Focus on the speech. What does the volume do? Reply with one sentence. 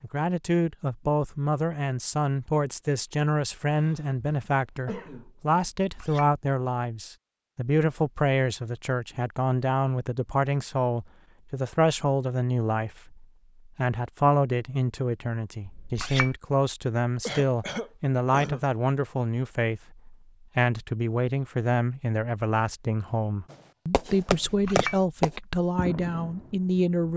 The loudness of the speech stays about the same.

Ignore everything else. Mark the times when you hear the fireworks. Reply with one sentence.
You can hear the fireworks from 23.5 to 26.9 s.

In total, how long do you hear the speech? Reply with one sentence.
You can hear the speech for 27 seconds altogether.